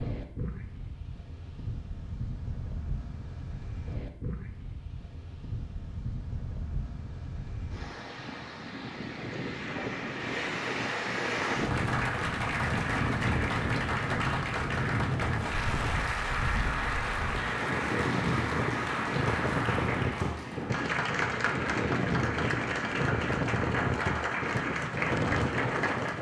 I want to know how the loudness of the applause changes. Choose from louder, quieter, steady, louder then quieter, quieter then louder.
steady.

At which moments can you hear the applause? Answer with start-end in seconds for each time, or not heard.
11.2-26.1.